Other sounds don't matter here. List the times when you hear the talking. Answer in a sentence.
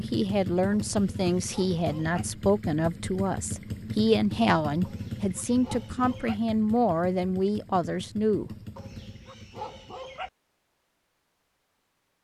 The talking can be heard from 0.0 to 8.5 s.